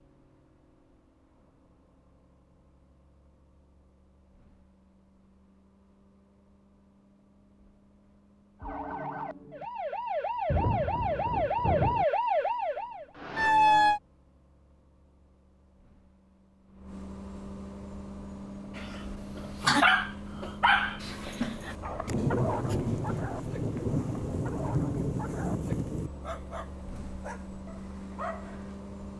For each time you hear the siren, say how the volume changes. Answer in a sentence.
You can hear the siren from 8.6 to 14.0 s, getting louder.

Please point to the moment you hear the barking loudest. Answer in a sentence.
The volume of the barking peaks at 20 seconds.